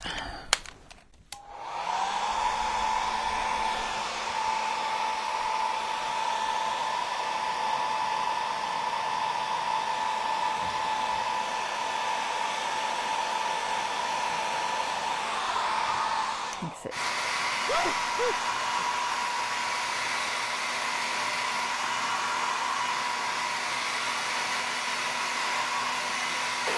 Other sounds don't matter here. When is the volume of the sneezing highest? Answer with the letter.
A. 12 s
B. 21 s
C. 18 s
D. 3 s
C.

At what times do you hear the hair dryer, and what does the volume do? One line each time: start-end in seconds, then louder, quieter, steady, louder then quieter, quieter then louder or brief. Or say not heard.
0.0-26.7 steady.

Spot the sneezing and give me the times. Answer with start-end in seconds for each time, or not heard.
10.6-11.2, 17.6-18.9.